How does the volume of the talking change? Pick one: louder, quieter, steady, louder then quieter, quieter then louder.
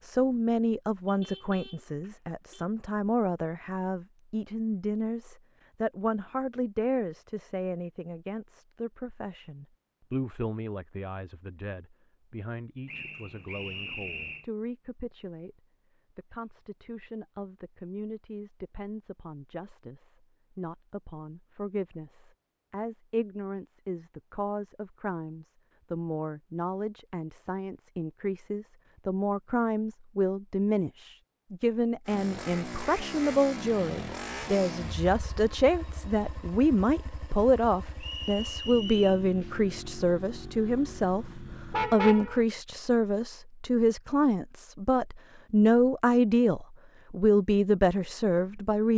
quieter then louder.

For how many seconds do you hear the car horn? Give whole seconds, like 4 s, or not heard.
2 s.